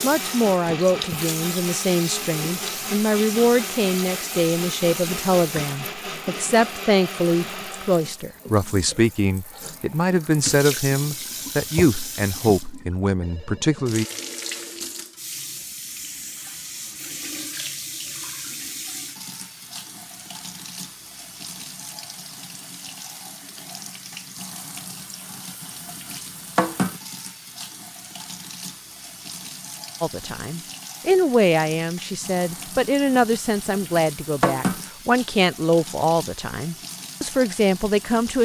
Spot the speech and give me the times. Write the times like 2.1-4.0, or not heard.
0.0-14.1, 30.0-38.3.